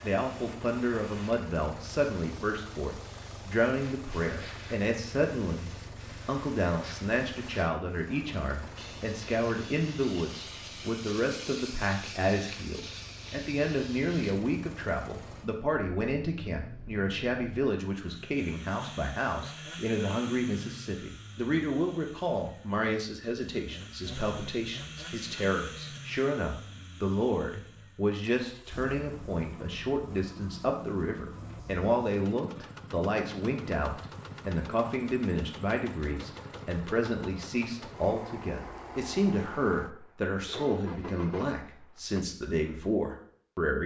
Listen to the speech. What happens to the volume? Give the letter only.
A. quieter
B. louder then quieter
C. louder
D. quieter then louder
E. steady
E.